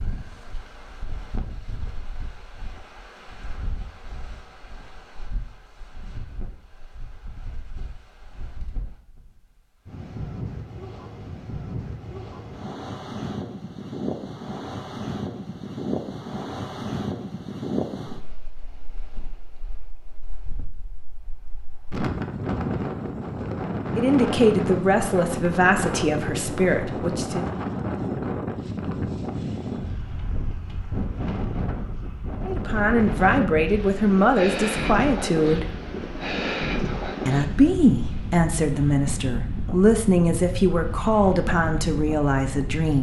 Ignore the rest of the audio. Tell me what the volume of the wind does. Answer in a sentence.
The loudness of the wind goes up.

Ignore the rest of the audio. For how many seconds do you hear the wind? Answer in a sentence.
You can hear the wind for 43 seconds altogether.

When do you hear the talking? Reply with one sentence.
You can hear the talking from 23.9 to 27.4 s, from 32.5 to 35.7 s and from 37.2 to 42.9 s.